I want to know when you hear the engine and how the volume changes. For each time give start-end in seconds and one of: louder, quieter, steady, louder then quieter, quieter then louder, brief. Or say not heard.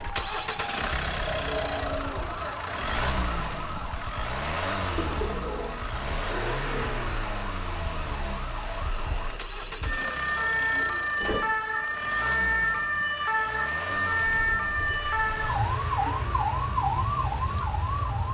0.0-18.2 quieter.